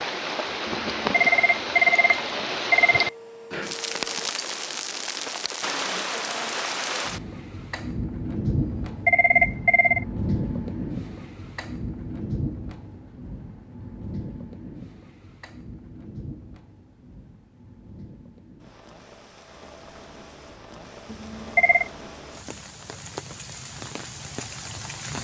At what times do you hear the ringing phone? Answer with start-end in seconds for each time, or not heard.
0.7-3.1, 8.6-10.1, 21.1-21.9.